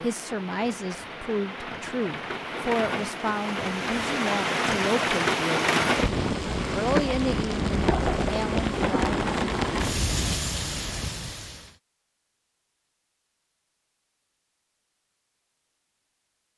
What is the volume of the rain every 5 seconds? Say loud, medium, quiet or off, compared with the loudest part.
medium, loud, medium, off.